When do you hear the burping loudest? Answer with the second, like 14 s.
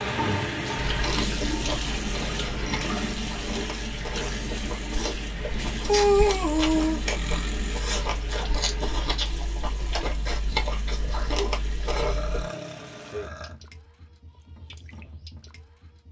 6 s.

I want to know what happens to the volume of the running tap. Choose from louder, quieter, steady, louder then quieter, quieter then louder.
quieter.